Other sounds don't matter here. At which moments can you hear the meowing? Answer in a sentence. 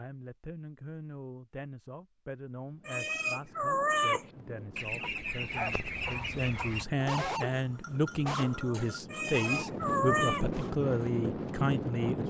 You can hear the meowing from 2.9 to 4.2 s and from 9.1 to 10.4 s.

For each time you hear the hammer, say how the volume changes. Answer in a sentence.
You can't hear the hammer here.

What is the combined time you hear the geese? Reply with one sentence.
You can hear the geese for 2 seconds altogether.